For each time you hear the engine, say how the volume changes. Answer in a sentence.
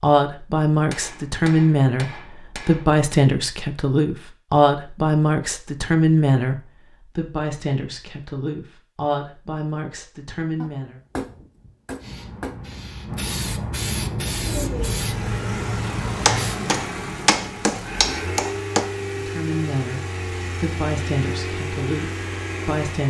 The engine can be heard from 14.3 to 23.0 s, at a steady volume.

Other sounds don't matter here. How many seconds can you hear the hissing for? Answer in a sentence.
You can hear the hissing for 5 seconds altogether.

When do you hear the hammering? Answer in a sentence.
The hammering can be heard from 0.9 to 3.2 s, from 10.6 to 12.6 s and from 16.2 to 18.9 s.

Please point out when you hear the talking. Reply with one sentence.
You can hear the talking from 0.0 to 10.9 s and from 19.1 to 23.0 s.